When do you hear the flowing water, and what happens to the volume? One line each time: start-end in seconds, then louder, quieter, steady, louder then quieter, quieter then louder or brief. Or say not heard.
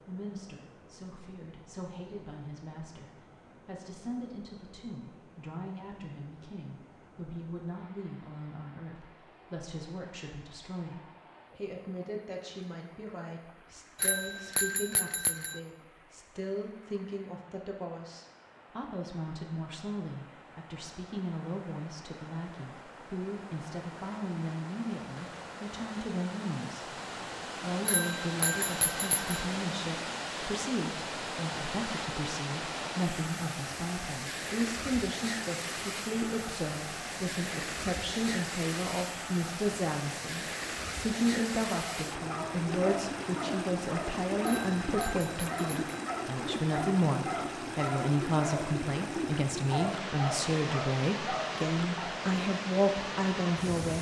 0.0-53.9 louder.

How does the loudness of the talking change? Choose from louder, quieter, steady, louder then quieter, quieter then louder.
louder.